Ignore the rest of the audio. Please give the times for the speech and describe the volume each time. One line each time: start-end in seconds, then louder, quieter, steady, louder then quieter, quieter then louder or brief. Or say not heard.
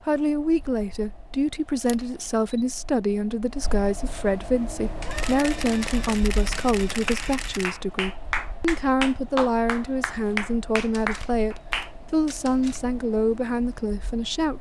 0.1-14.5 steady.